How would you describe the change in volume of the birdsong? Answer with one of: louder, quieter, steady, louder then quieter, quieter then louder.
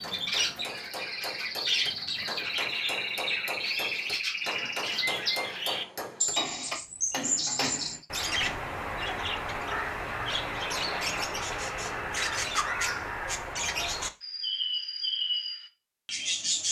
steady.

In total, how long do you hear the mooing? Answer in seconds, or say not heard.
not heard.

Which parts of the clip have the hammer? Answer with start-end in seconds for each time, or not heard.
0.0-8.6.